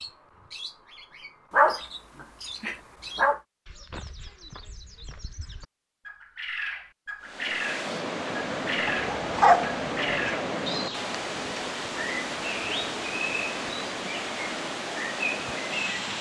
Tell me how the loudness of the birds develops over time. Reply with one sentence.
The volume of the birds goes up.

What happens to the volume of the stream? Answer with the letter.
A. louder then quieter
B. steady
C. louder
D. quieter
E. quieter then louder
B.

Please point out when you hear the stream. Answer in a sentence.
You can hear the stream from 7.2 to 16.1 s.